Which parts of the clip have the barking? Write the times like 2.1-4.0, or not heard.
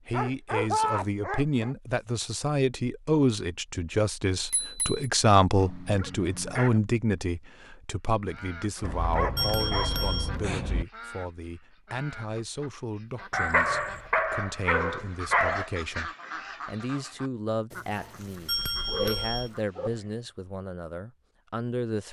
0.1-1.8, 5.5-6.8, 8.8-10.8, 13.3-15.7, 17.9-19.9.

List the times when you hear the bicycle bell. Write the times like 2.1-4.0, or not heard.
4.5-5.0, 9.3-10.3, 18.4-19.5.